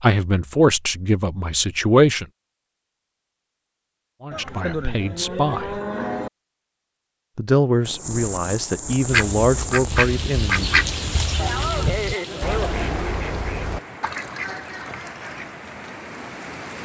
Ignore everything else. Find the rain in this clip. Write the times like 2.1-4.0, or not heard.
7.8-16.8.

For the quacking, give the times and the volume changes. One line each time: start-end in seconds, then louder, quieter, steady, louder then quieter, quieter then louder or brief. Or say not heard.
9.1-15.6 quieter.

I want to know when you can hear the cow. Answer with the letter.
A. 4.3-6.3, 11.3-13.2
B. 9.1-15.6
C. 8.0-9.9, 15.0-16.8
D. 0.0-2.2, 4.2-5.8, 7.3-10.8
A.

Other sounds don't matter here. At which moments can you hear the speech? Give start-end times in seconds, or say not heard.
0.0-2.2, 4.2-5.8, 7.3-10.8.